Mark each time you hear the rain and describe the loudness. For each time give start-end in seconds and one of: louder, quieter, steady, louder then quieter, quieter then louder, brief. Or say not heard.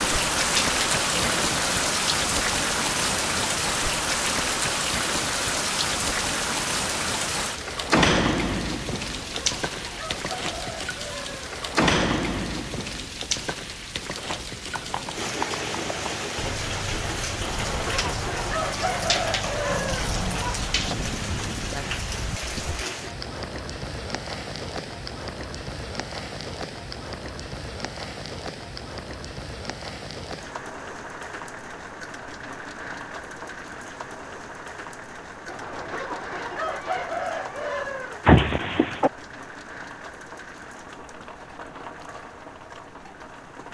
0.0-43.7 quieter.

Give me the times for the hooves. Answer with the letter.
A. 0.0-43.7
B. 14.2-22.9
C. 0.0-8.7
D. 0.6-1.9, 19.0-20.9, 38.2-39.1
B.